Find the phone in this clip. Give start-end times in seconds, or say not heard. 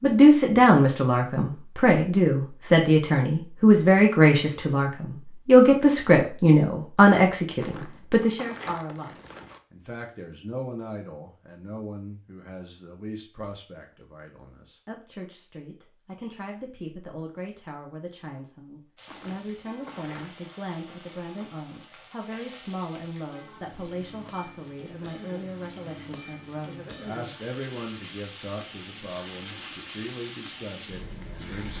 not heard.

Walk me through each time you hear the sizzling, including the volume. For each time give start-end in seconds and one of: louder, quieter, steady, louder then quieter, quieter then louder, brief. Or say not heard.
18.9-31.7 louder.